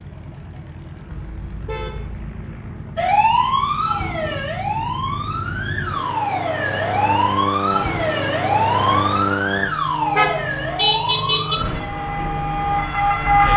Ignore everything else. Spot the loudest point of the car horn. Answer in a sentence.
The volume of the car horn peaks at 11 seconds.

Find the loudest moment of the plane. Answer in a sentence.
The volume of the plane peaks at 9 seconds.